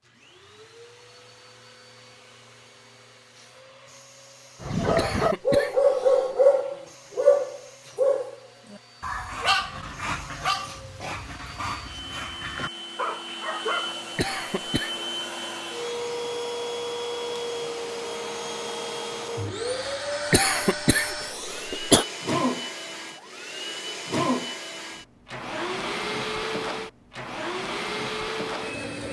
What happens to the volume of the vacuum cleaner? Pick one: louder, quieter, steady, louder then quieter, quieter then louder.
louder.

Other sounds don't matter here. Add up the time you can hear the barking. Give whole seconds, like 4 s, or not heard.
9 s.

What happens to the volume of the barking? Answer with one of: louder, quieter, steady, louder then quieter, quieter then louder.
quieter.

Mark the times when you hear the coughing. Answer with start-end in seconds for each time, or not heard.
5.0-6.3, 14.2-14.9, 20.3-22.1.